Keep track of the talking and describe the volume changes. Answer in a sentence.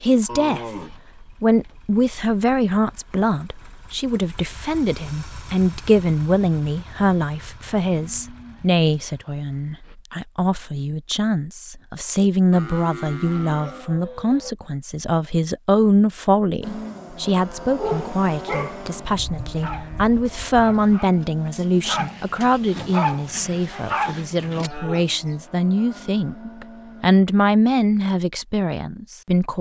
The volume of the talking stays about the same.